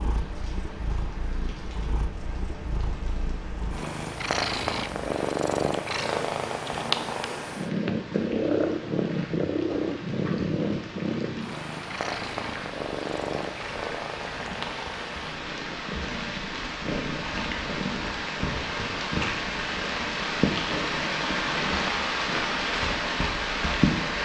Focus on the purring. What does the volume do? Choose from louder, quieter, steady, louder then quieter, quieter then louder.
louder then quieter.